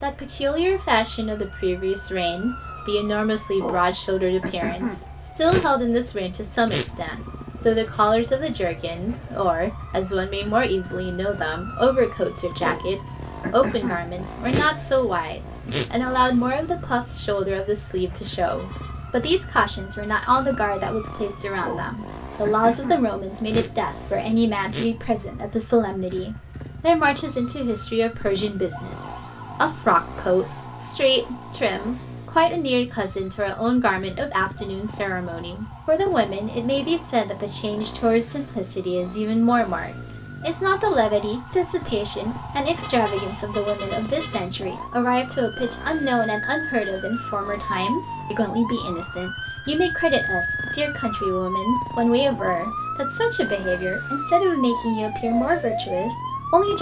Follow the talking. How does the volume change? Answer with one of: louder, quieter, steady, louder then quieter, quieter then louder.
steady.